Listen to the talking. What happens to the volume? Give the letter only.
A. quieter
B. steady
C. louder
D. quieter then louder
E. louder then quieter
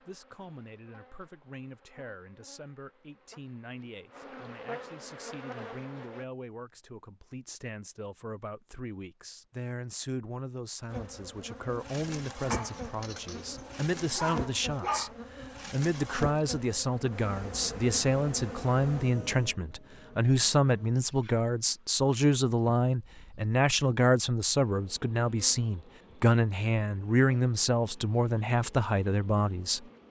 C.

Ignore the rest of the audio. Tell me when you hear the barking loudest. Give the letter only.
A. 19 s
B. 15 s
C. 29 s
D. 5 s
B.